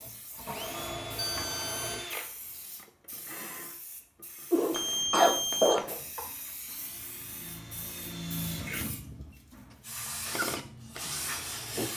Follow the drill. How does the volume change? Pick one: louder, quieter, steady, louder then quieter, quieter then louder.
quieter then louder.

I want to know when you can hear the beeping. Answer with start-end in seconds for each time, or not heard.
1.1-2.1, 4.7-5.8, 8.9-9.4.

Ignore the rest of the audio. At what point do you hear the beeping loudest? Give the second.
5 s.